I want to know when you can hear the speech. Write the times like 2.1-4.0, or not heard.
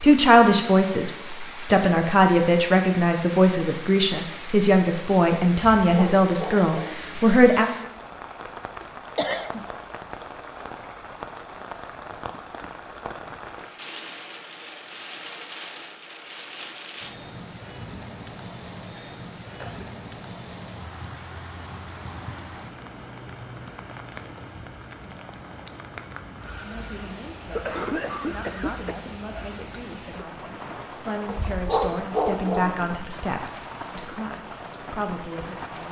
0.0-7.7, 26.6-35.8.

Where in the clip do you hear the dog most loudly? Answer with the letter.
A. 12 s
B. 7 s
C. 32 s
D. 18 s
C.